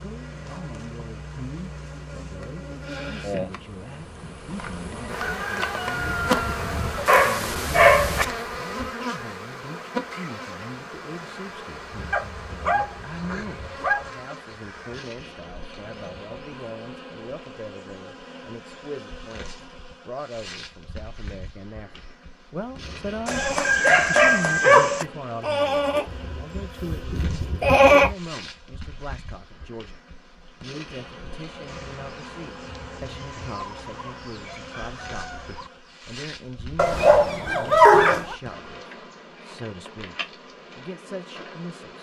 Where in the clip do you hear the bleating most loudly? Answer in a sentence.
The volume of the bleating peaks at 28 seconds.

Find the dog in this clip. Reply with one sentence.
You can hear the dog from 7.0 to 8.2 s, from 12.1 to 14.1 s, from 23.2 to 25.1 s and from 36.8 to 38.4 s.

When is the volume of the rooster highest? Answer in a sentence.
The volume of the rooster peaks at 24 seconds.